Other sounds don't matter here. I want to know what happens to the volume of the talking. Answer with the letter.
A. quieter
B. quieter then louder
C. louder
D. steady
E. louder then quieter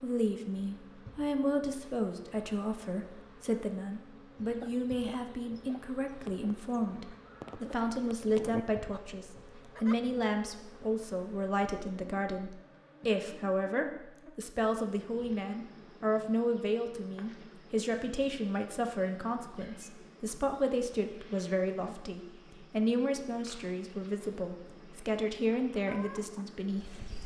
D.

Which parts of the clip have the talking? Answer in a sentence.
The talking can be heard from 0.0 to 27.1 s.